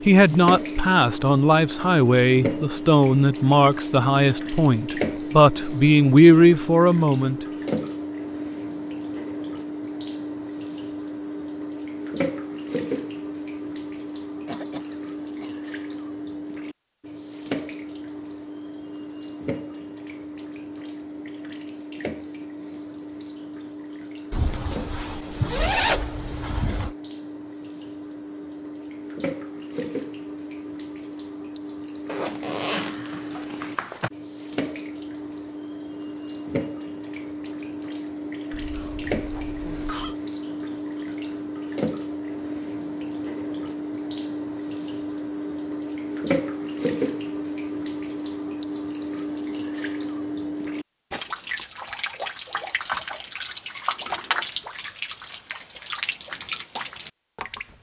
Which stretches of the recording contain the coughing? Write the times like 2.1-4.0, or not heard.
14.4-15.6, 38.5-40.1.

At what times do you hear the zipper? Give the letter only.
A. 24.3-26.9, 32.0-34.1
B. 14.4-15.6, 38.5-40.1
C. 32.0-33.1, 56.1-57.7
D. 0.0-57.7
A.